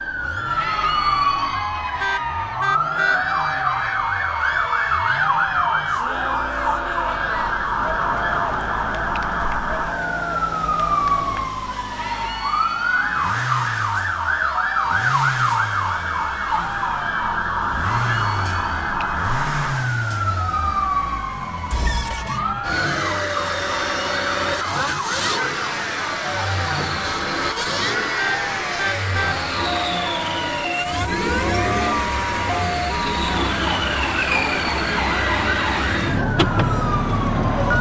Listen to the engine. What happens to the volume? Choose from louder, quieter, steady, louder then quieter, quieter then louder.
louder.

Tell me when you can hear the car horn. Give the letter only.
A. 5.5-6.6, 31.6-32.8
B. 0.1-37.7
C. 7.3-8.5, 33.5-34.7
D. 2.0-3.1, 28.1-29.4
D.